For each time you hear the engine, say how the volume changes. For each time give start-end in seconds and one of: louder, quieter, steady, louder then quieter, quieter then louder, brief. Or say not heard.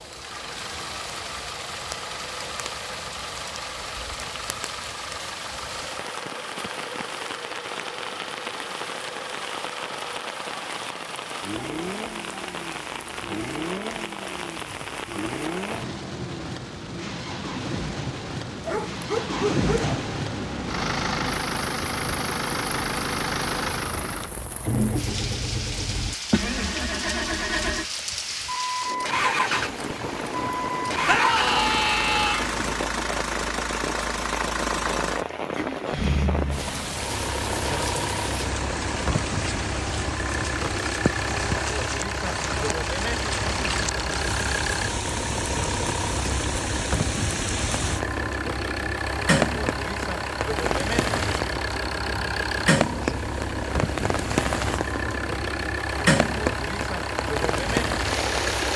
0.0-58.7 louder.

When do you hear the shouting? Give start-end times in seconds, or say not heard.
31.1-32.5.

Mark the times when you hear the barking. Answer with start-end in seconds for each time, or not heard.
18.6-19.9.